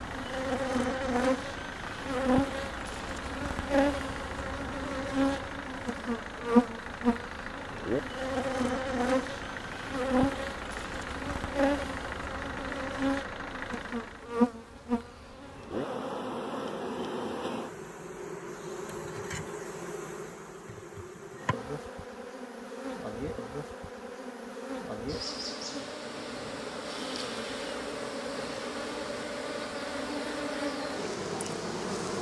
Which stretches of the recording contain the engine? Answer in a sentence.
You can hear the engine from 0.0 to 14.3 s.